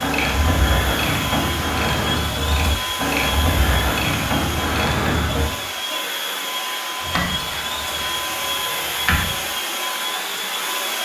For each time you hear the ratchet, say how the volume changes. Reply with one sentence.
You can hear the ratchet from 0.0 to 5.5 s, at a steady volume; and briefly from 7.0 to 9.2 s.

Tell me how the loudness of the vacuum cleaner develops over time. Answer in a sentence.
The loudness of the vacuum cleaner stays about the same.